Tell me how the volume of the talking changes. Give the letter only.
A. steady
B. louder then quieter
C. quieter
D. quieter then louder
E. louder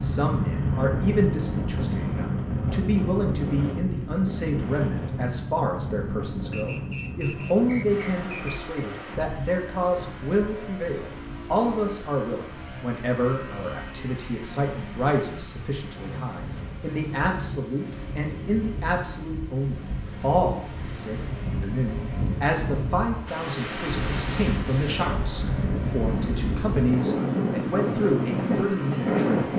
A.